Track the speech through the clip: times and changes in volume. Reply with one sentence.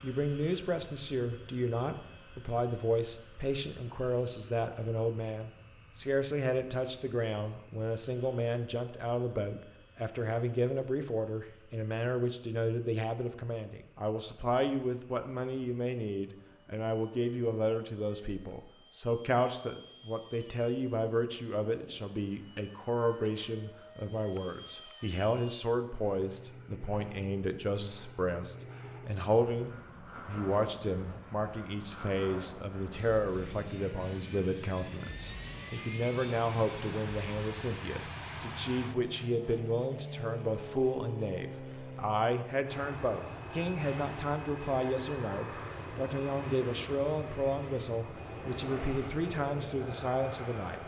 You can hear the speech from 0.0 to 50.8 s, at a steady volume.